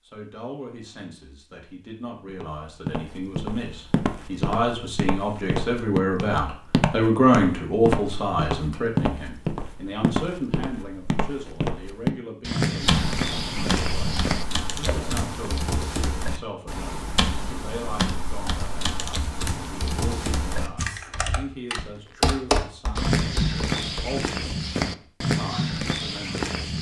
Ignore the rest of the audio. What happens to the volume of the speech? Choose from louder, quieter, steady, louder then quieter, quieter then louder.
louder then quieter.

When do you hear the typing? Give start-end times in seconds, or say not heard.
12.8-24.6.